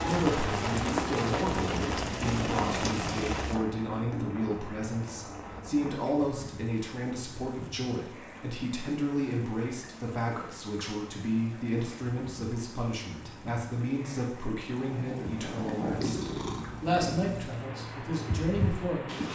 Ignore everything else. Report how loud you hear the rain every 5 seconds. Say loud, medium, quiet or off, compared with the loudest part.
loud, quiet, quiet, quiet.